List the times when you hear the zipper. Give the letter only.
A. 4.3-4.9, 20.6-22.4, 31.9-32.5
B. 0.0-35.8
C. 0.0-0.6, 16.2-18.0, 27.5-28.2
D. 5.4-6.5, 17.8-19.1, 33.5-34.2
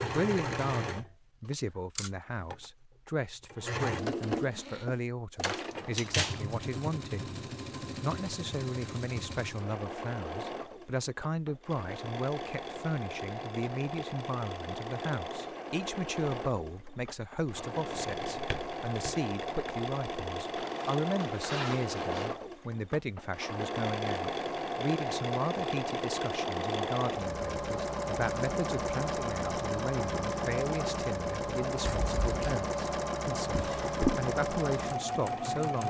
A.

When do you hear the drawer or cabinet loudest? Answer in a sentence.
The volume of the drawer or cabinet peaks at 34 seconds.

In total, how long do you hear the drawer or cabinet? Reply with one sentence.
You can hear the drawer or cabinet for 3 seconds altogether.